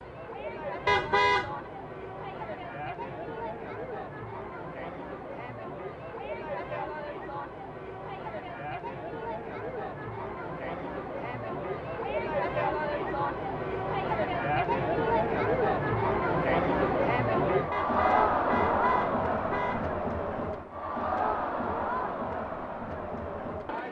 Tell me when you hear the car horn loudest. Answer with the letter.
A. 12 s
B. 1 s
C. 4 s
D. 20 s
B.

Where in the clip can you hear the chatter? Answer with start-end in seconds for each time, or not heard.
0.0-23.8.